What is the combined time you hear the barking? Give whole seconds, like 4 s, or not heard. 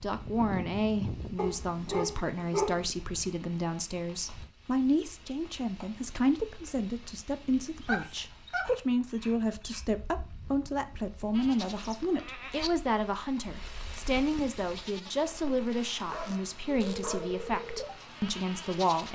5 s.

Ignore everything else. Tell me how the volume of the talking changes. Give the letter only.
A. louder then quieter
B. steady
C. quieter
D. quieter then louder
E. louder
B.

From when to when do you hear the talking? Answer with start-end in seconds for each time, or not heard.
0.0-19.0.